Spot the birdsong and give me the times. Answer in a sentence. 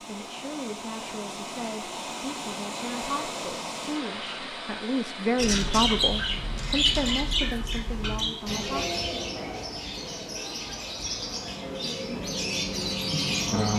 The birdsong can be heard from 5.3 to 13.7 s.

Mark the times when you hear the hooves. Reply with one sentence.
The hooves can't be heard in this clip.